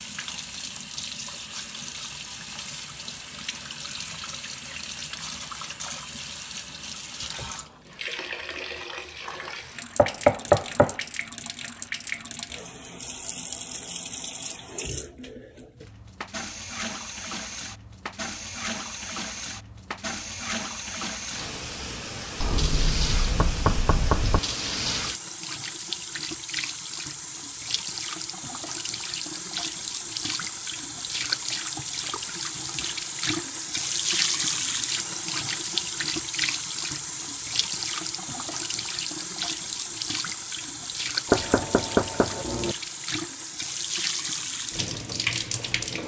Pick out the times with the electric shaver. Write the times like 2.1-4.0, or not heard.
not heard.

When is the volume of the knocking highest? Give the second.
10 s.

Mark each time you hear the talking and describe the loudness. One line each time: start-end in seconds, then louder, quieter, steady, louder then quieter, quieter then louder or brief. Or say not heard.
not heard.